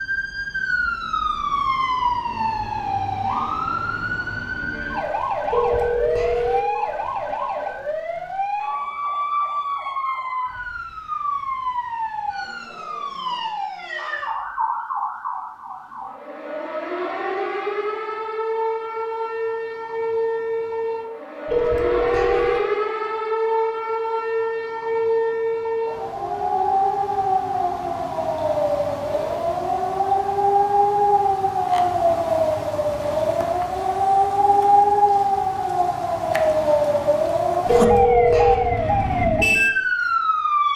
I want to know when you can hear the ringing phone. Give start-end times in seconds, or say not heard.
5.5-6.7, 21.4-22.6, 37.6-38.6.